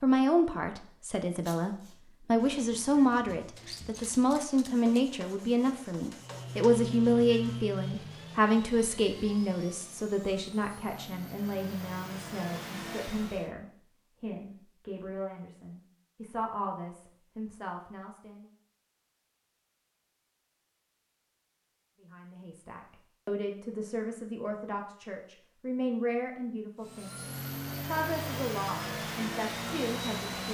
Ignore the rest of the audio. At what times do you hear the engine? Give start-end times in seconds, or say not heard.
6.2-13.5, 26.8-30.4.